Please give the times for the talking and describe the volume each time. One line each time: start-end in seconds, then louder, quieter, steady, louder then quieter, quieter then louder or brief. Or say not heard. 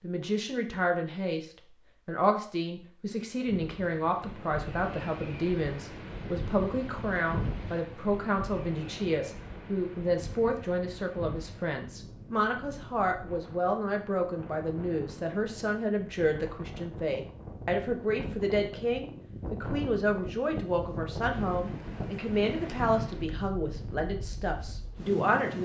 0.0-25.6 steady.